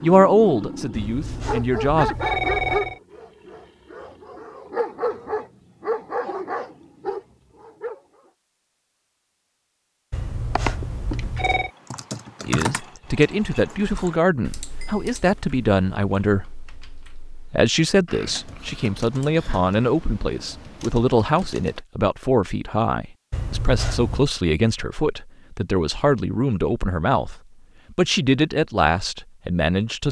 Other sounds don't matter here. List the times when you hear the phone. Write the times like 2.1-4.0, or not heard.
0.9-3.0, 10.1-11.7, 23.3-24.2.